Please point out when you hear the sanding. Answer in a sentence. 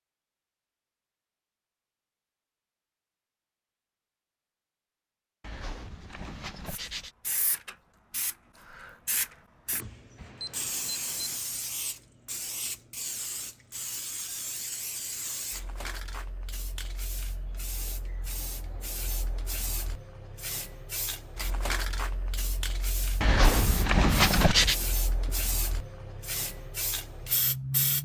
The sanding can be heard from 5.4 to 7.1 s and from 23.2 to 24.8 s.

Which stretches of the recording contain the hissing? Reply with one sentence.
The hissing can be heard from 6.7 to 28.0 s.